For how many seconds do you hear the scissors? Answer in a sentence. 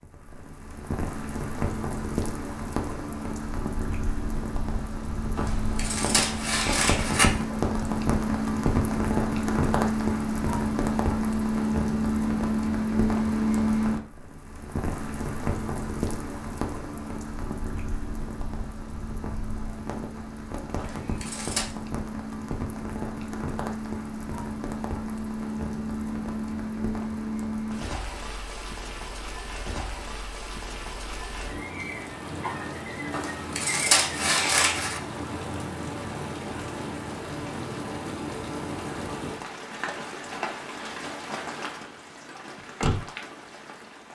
You can hear the scissors for 5 seconds altogether.